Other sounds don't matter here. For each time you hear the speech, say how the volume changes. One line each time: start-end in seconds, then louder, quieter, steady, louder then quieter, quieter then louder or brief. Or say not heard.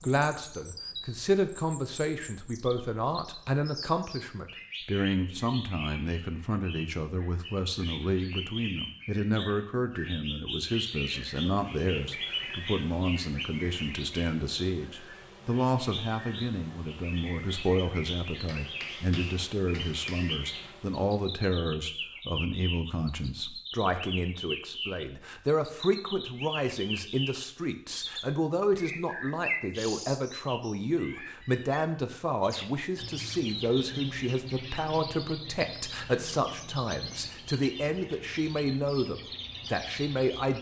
0.0-40.5 steady.